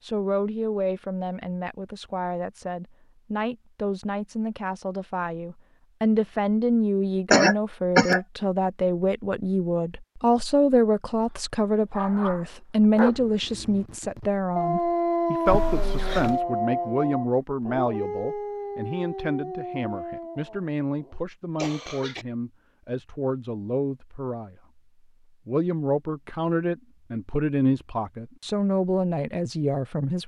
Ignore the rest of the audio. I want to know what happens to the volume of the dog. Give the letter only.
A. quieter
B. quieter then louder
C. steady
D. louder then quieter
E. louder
D.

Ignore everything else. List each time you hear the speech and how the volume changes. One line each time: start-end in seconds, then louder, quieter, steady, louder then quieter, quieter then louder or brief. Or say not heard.
0.0-24.6 louder then quieter
25.4-30.2 steady.